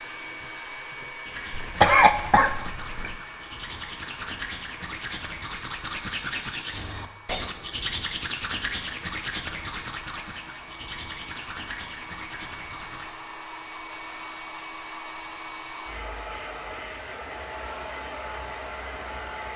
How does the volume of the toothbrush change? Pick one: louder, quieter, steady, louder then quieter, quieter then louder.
louder then quieter.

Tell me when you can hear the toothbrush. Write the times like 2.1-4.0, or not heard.
1.2-13.1.